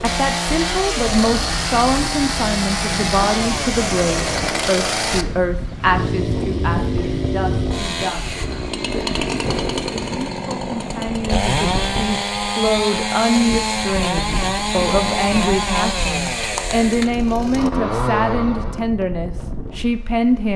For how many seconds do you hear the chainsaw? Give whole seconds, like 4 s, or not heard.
19 s.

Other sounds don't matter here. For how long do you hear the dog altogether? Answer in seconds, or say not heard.
not heard.